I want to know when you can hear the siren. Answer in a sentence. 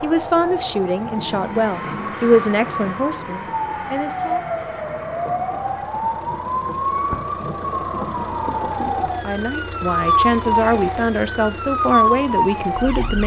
The siren can be heard from 0.0 to 13.2 s.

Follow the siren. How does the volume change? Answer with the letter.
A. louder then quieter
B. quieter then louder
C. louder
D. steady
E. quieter
C.